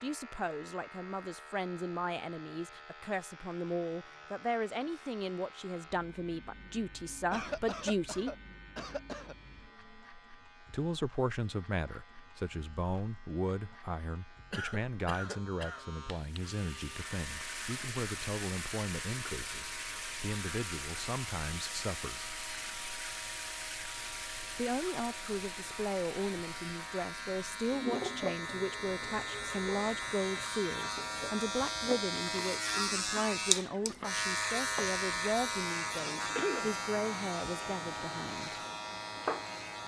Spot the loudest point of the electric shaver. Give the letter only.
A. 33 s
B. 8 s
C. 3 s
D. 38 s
A.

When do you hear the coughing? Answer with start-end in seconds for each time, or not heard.
7.3-9.3, 14.5-15.8, 36.4-36.8.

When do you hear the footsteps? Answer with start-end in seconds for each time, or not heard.
not heard.